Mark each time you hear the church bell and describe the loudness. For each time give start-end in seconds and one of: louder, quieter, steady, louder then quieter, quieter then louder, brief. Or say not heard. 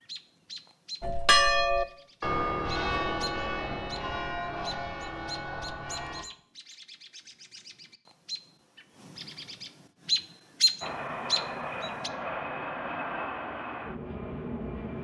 1.0-6.2 quieter.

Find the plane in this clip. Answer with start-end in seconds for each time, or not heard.
10.8-15.0.